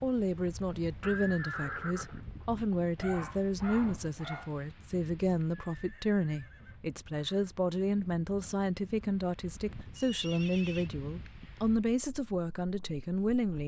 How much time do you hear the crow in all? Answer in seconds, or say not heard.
not heard.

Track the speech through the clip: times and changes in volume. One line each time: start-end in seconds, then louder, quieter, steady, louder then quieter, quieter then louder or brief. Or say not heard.
0.0-13.6 steady.